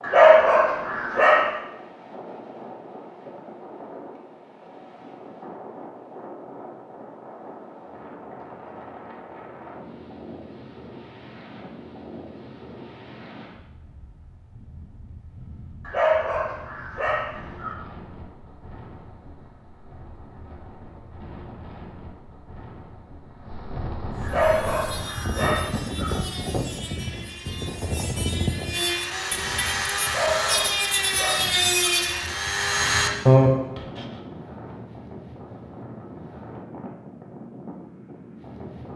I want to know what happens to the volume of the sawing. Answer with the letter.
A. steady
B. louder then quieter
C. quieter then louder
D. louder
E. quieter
D.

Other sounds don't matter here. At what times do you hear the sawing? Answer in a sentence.
The sawing can be heard from 24.1 to 34.0 s.